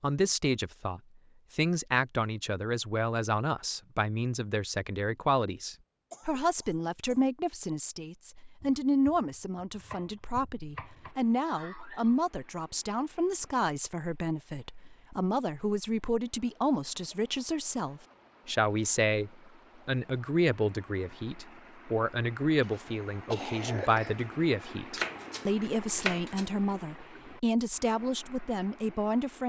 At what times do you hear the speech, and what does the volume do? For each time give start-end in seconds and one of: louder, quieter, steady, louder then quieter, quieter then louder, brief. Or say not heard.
0.0-29.4 steady.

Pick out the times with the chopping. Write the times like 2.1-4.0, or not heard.
8.6-11.2, 24.9-26.4.